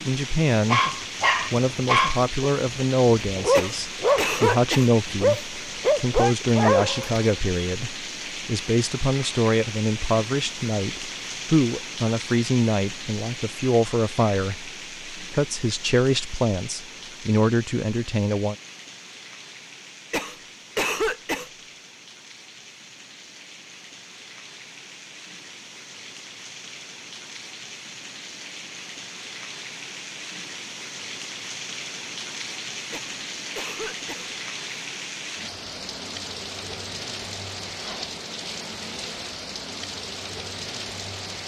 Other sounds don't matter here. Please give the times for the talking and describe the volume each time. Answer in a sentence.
The talking can be heard briefly from 0.1 to 0.8 s; and from 1.5 to 18.6 s, at a steady volume.